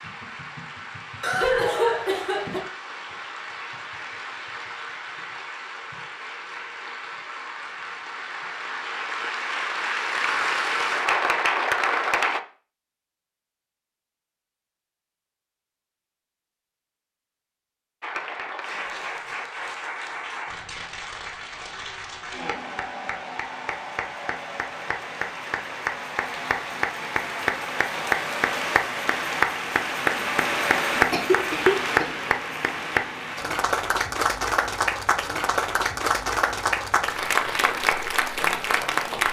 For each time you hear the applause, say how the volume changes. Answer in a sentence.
The applause can be heard from 0.0 to 12.4 s, getting louder; and from 18.0 to 39.2 s, getting louder.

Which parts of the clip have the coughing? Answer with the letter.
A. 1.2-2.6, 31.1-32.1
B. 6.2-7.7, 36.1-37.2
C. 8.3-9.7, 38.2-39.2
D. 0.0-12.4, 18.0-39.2
A.